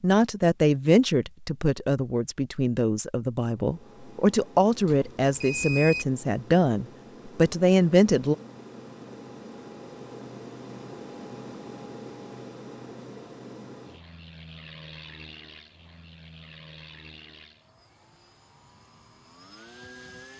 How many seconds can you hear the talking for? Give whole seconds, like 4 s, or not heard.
8 s.